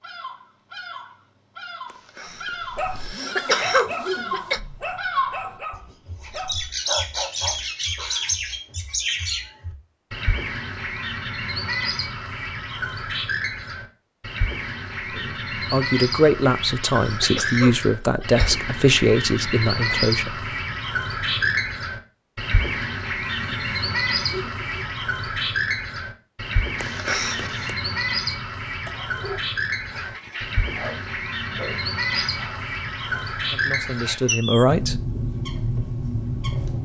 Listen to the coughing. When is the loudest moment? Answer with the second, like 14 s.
4 s.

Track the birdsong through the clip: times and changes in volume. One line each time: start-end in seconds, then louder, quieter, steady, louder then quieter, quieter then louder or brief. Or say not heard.
0.0-36.8 steady.